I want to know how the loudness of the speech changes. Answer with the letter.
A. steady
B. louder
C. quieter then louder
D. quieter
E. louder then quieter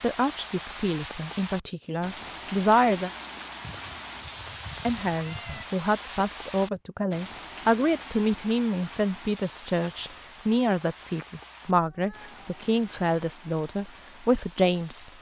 A.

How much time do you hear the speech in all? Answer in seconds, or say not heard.
13 s.